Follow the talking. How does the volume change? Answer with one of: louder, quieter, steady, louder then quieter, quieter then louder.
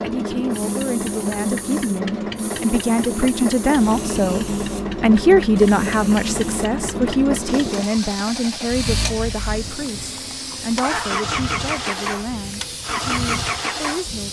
louder then quieter.